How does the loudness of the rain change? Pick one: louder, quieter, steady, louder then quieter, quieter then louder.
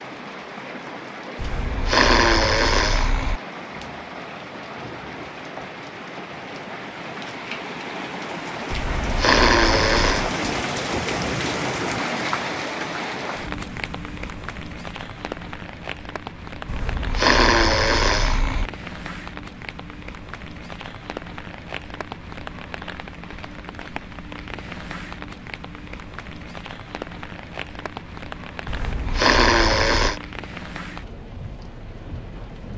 louder then quieter.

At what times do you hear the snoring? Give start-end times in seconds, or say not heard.
1.4-3.4, 8.7-10.3, 16.6-18.6, 28.6-30.2.